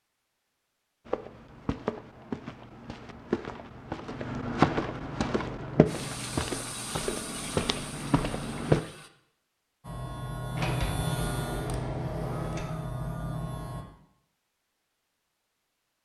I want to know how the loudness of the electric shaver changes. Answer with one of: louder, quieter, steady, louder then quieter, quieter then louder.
steady.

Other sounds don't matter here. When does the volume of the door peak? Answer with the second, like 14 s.
11 s.